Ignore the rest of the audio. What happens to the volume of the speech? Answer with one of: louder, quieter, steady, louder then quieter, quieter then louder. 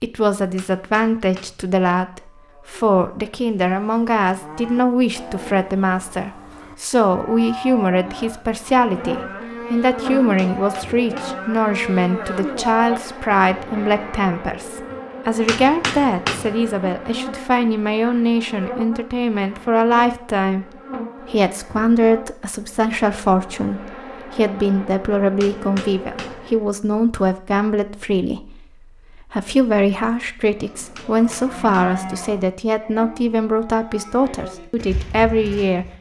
steady.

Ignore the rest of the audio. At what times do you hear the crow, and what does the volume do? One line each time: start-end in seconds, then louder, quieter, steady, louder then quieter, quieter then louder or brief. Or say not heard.
not heard.